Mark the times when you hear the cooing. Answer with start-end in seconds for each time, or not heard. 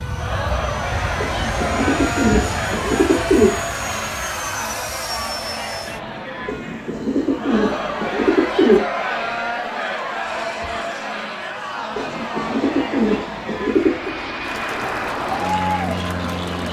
1.2-3.5, 6.5-8.8, 11.9-14.2.